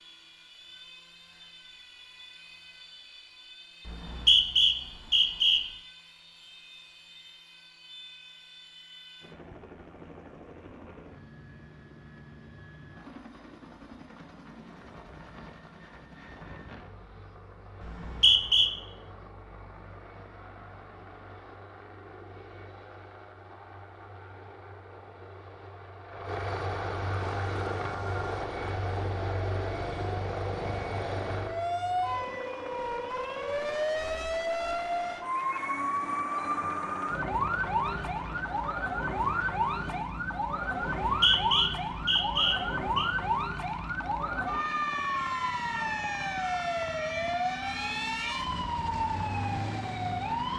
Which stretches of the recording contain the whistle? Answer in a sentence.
You can hear the whistle from 3.9 to 5.6 s, from 17.8 to 18.7 s and from 41.0 to 43.1 s.